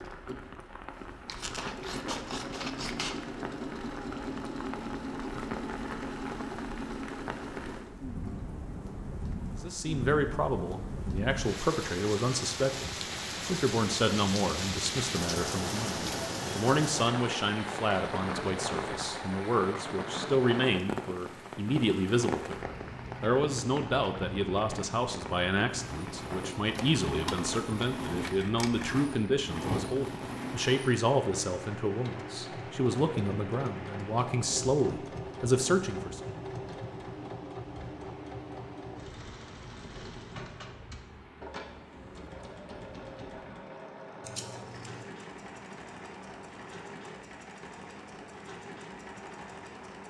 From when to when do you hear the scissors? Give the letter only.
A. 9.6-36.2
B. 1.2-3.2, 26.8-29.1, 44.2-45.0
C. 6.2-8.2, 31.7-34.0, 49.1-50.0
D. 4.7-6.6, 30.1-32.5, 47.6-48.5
B.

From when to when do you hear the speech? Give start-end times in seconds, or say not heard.
9.6-36.2.